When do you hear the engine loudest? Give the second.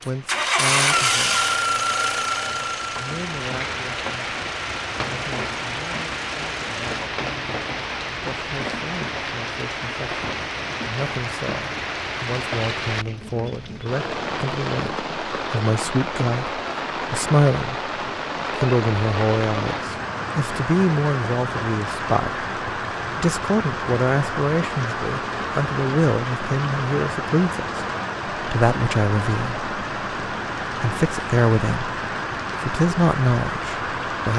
1 s.